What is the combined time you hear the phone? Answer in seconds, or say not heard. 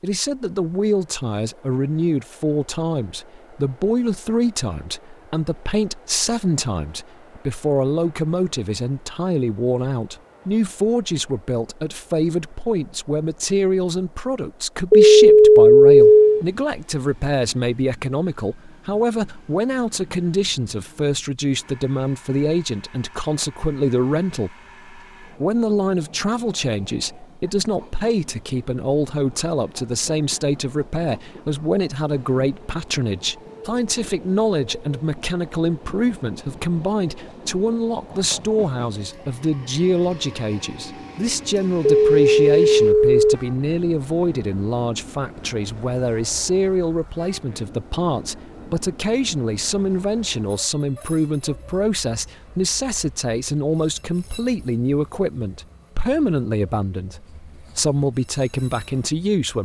3 s.